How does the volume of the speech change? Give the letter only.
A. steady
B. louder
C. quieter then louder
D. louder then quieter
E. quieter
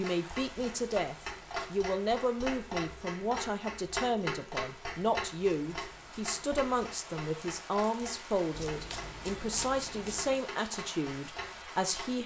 A.